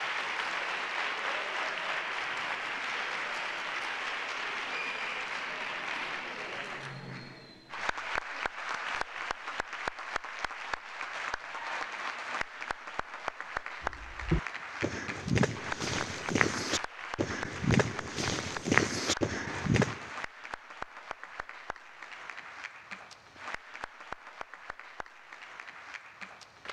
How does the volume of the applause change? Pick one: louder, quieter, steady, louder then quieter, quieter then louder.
quieter.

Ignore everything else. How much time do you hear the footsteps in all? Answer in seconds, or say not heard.
6 s.